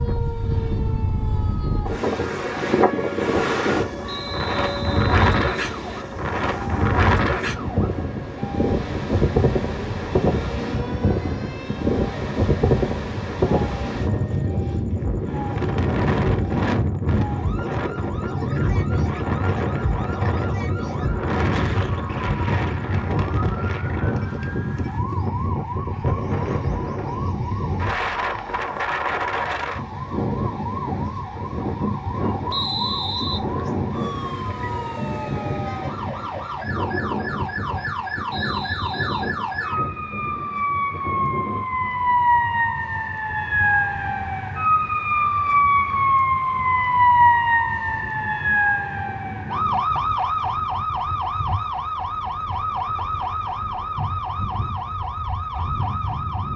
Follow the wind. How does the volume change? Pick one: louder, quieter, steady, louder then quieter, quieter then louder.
quieter.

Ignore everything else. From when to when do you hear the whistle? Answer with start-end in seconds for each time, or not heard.
4.0-6.0, 32.5-33.4, 38.2-39.3.